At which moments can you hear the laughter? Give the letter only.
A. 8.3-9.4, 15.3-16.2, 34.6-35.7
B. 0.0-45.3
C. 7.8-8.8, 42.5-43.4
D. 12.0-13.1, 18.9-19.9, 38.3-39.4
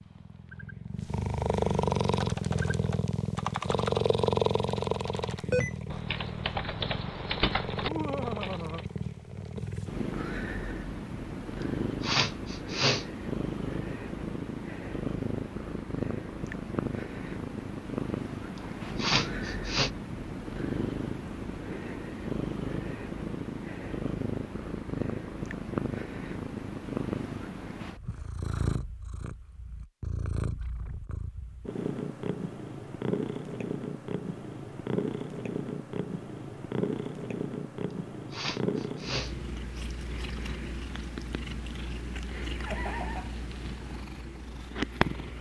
C.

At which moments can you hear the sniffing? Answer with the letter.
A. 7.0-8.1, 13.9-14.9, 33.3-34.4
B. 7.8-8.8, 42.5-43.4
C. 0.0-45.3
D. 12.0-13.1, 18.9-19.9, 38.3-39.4
D.